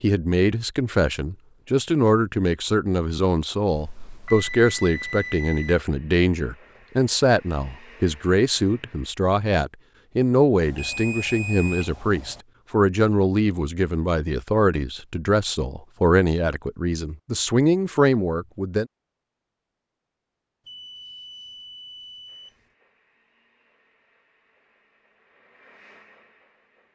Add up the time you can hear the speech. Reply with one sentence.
You can hear the speech for 19 seconds altogether.